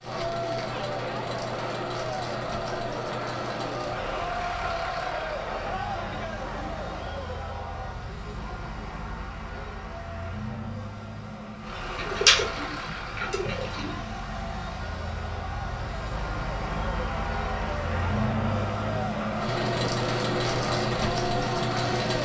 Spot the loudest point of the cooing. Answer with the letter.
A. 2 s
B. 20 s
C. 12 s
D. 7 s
C.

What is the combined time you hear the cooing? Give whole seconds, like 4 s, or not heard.
2 s.